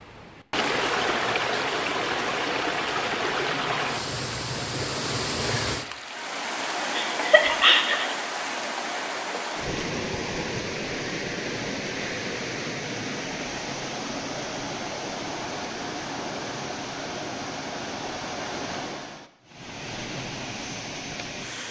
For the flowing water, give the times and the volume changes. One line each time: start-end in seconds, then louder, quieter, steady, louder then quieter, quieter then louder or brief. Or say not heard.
0.0-21.6 quieter.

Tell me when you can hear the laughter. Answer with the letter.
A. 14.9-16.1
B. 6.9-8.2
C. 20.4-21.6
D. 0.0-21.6
B.